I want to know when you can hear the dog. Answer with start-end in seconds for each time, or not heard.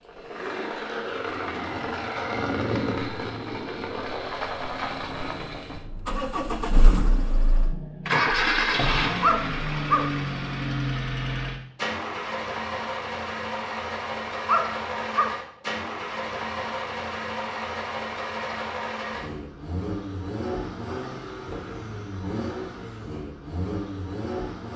9.2-10.2, 14.4-15.4.